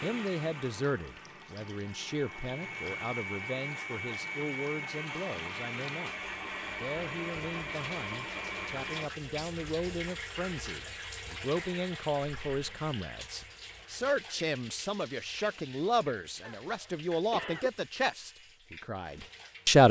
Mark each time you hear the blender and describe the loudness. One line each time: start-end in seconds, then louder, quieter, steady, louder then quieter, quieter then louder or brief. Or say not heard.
0.0-9.1 louder.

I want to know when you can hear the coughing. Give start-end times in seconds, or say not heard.
16.4-17.8.